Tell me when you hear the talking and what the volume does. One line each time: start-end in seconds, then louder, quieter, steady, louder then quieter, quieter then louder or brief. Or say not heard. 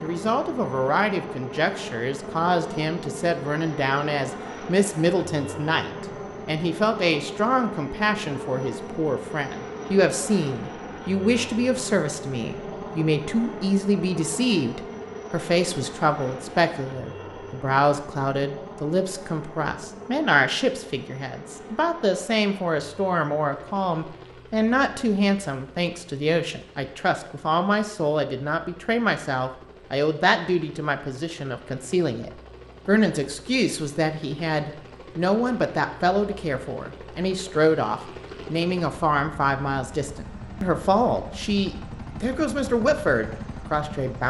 0.0-44.2 steady.